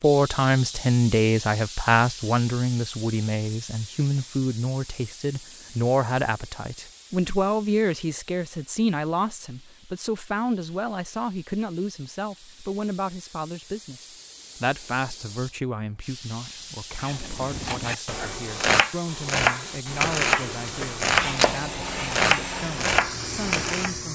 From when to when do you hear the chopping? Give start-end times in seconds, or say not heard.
17.0-23.9.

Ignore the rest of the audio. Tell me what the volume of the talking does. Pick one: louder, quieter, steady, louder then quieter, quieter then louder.
quieter.